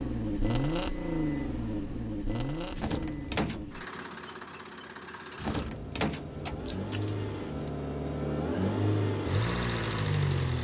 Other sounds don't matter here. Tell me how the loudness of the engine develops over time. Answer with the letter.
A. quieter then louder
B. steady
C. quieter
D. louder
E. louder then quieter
A.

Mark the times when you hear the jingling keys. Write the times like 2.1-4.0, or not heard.
2.8-3.8, 5.3-7.7.